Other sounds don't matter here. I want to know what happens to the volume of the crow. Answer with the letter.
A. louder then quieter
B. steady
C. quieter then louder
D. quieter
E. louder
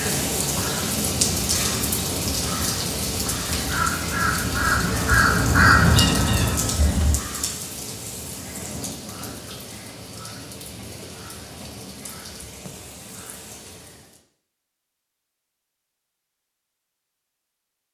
E.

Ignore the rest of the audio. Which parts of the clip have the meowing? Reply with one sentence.
The meowing can't be heard in this clip.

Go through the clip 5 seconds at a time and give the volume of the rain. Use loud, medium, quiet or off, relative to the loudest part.
loud, medium, quiet, off.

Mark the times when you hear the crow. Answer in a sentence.
You can hear the crow from 1.1 to 7.2 s.